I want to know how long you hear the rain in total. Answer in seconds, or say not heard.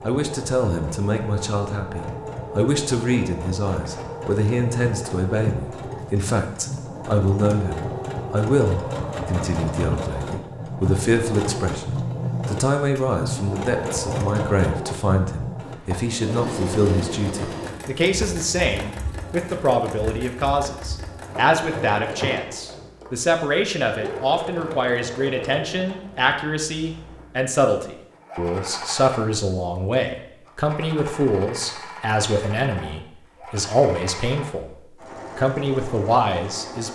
not heard.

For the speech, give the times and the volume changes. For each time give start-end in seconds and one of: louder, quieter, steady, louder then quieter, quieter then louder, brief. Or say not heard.
0.0-34.7 steady
35.4-36.9 brief.